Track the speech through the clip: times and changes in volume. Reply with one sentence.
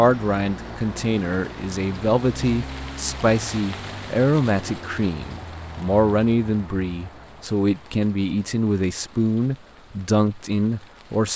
The speech can be heard from 0.0 to 11.3 s, at a steady volume.